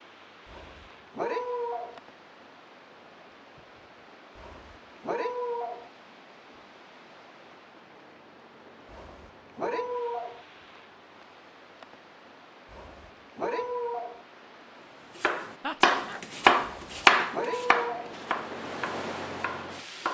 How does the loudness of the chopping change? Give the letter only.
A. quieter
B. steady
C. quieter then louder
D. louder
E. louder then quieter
E.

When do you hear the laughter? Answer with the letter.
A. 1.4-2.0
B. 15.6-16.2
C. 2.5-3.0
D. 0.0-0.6
B.